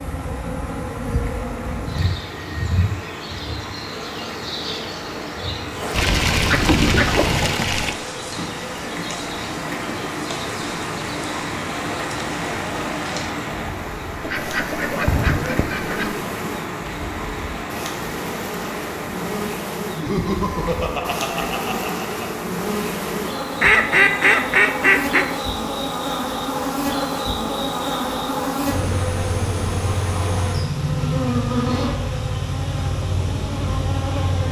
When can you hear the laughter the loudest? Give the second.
20 s.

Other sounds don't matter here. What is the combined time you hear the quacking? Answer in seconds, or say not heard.
6 s.